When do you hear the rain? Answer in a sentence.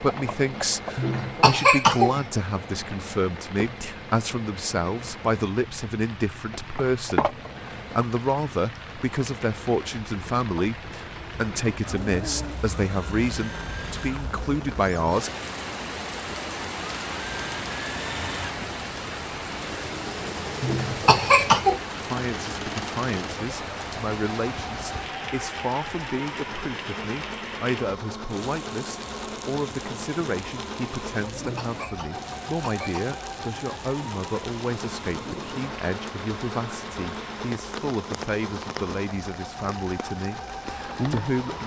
The rain can be heard from 0.0 to 41.6 s.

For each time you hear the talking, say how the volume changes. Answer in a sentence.
The talking can be heard from 0.0 to 15.3 s, at a steady volume; and from 22.0 to 41.6 s, at a steady volume.